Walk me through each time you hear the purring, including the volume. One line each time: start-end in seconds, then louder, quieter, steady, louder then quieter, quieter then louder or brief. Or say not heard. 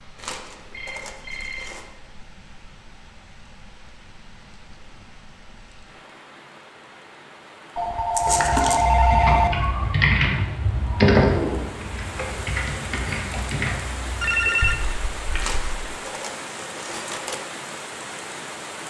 not heard.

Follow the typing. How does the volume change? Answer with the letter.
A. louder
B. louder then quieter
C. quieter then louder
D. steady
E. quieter
B.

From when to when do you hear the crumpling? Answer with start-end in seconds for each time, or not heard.
0.1-1.9, 8.2-8.8, 15.3-17.4.